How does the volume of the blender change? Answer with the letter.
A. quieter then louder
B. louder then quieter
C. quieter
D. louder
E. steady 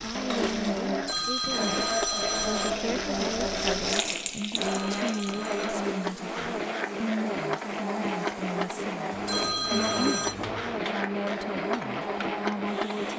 E.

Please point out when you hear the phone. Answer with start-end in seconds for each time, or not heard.
1.1-2.7, 4.7-5.7, 9.2-10.3.